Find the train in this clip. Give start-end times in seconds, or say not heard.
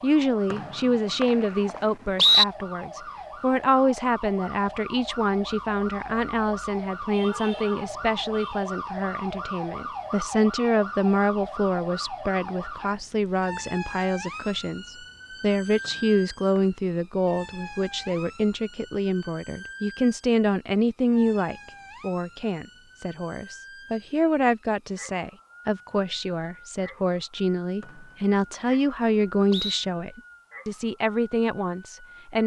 not heard.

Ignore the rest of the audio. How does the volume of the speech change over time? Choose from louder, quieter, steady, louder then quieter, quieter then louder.
steady.